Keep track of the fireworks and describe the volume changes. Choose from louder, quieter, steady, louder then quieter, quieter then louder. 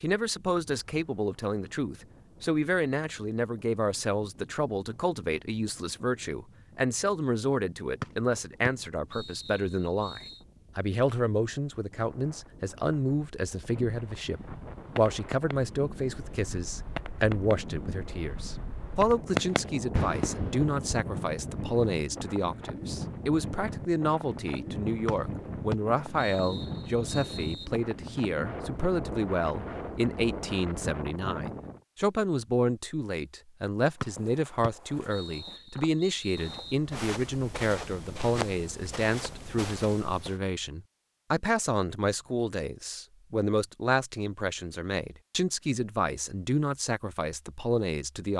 louder.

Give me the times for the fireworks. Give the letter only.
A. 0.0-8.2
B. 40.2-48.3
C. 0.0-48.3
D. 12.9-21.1
D.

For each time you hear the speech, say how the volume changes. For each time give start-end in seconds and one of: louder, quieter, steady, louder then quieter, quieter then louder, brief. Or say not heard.
0.0-48.3 steady.